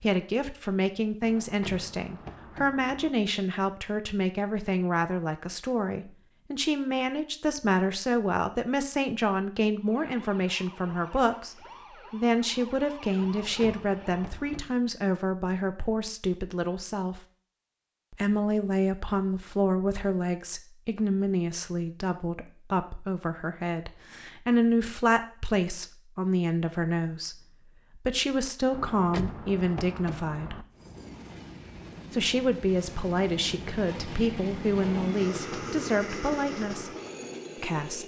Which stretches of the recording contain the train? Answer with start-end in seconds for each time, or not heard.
30.7-38.0.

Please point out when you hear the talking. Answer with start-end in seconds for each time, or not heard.
0.0-17.2, 18.1-30.6, 32.1-37.0, 37.5-38.0.